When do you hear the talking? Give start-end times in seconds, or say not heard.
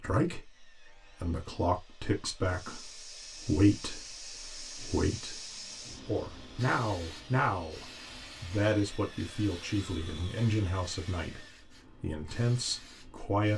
0.0-13.5.